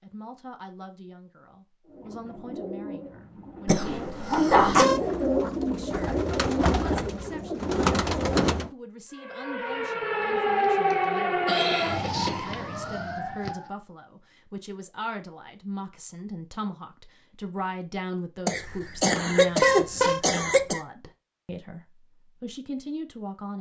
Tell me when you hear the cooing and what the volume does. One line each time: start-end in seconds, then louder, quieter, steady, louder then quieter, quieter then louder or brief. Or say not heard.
1.9-8.7 louder.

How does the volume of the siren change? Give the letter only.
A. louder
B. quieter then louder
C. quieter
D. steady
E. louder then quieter
E.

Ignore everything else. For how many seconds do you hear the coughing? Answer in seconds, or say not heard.
5 s.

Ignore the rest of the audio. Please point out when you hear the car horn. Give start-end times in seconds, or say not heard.
4.3-5.0, 19.1-20.2.